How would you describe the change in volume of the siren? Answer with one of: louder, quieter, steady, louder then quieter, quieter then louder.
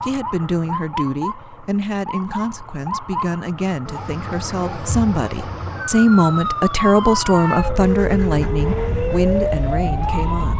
louder.